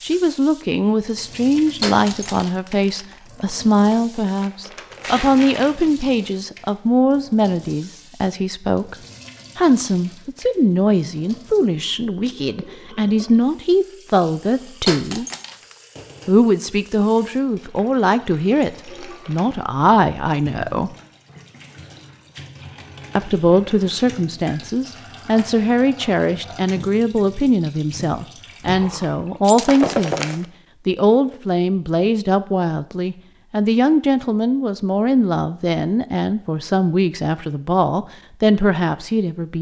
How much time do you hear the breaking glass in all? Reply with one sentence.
The breaking glass can be heard for 3 seconds in total.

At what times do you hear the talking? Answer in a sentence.
You can hear the talking from 0.0 to 8.9 s, from 9.6 to 15.2 s, from 16.2 to 20.9 s and from 23.1 to 39.5 s.